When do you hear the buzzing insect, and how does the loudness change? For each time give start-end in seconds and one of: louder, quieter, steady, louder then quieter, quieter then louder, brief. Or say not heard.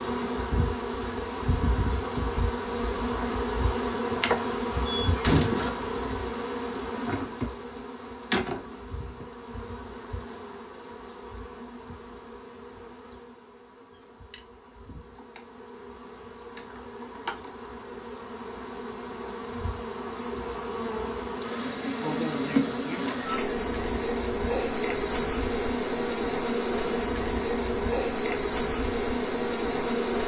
0.0-30.2 quieter then louder.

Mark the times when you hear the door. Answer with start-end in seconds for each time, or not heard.
4.8-5.6.